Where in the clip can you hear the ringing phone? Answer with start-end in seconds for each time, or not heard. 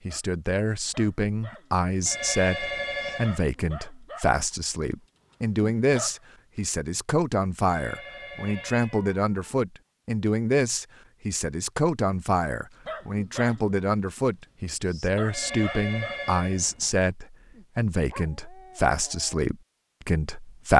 2.0-3.5, 7.7-9.1, 15.2-17.1.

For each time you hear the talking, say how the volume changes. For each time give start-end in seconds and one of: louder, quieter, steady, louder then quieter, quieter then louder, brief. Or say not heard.
0.1-20.7 steady.